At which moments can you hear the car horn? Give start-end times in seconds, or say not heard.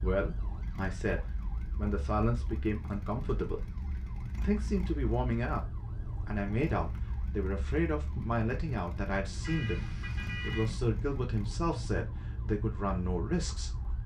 9.4-10.7.